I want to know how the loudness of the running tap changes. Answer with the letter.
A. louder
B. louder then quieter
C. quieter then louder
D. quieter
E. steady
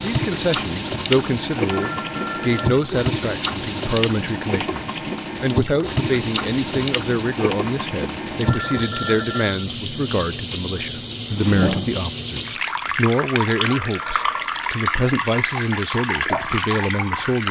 E.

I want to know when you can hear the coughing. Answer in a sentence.
You can hear the coughing from 11.1 to 12.0 s.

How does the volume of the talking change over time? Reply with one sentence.
The volume of the talking stays about the same.